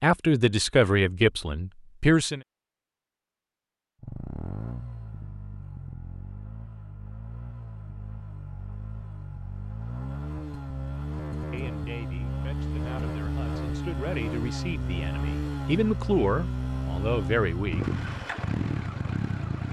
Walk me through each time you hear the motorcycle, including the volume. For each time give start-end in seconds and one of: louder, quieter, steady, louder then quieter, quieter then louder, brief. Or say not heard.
4.0-19.6 louder.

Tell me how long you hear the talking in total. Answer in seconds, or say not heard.
9 s.